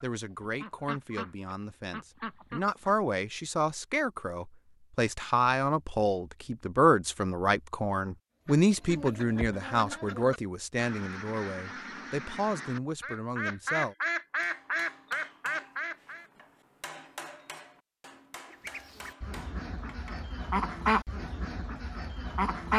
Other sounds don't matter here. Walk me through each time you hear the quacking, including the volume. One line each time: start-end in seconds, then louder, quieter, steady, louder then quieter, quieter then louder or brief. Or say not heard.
0.0-3.0 brief
8.4-16.2 louder
18.5-22.7 louder then quieter.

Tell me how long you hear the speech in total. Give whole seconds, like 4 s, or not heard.
14 s.